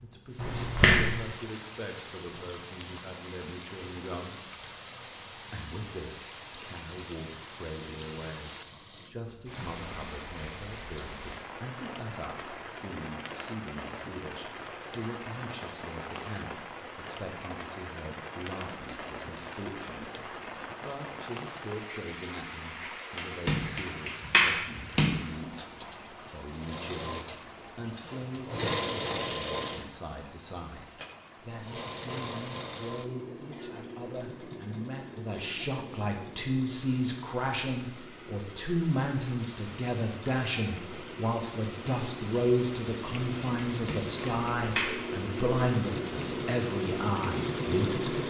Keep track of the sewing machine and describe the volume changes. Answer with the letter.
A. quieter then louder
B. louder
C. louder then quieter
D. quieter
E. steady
A.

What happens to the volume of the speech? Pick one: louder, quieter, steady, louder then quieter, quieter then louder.
louder.